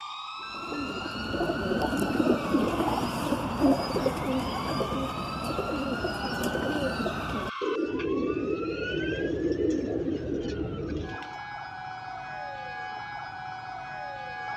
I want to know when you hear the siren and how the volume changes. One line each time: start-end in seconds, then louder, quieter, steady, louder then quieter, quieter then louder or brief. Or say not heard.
0.0-14.5 steady.